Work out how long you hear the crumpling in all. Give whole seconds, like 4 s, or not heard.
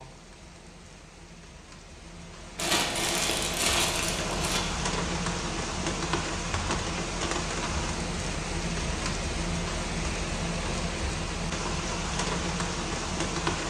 2 s.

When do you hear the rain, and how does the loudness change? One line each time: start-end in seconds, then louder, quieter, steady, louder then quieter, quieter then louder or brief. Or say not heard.
0.0-13.6 louder.